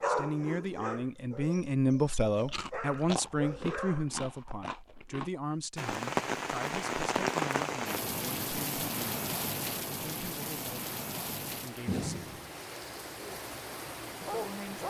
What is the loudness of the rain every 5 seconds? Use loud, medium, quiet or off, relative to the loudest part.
off, loud, medium.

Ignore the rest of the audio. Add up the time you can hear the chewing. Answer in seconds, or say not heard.
3 s.